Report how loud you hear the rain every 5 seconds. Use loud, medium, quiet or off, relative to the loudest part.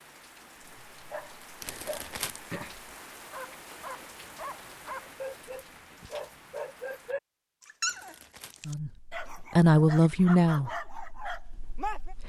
loud, loud, off.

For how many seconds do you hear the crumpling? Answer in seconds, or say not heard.
2 s.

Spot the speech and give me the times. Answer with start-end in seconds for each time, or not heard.
8.7-12.2.